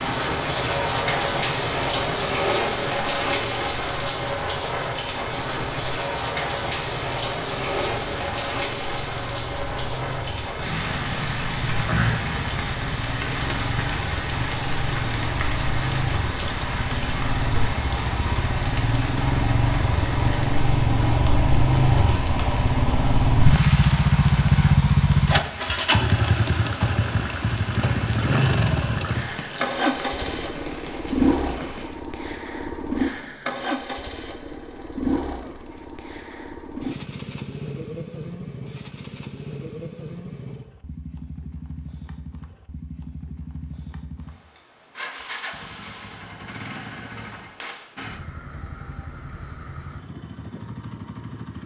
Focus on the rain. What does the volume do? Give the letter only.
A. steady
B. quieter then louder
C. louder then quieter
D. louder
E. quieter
E.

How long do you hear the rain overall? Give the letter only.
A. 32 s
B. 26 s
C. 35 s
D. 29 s
A.